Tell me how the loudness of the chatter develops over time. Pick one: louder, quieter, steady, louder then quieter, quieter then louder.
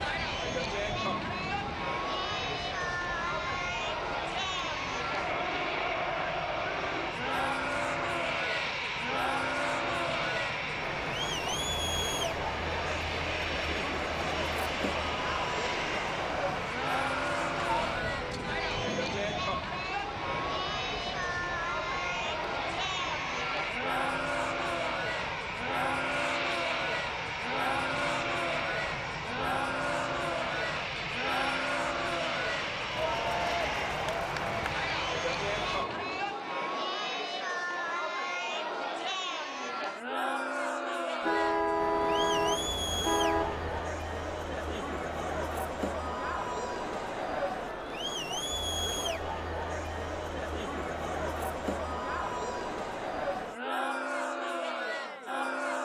steady.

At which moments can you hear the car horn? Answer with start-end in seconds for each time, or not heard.
17.6-19.0, 41.2-43.9.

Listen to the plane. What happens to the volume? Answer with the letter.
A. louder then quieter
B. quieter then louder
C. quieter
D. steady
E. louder
D.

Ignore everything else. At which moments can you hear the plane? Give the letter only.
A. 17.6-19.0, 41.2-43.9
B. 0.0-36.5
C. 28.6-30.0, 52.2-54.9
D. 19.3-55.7
B.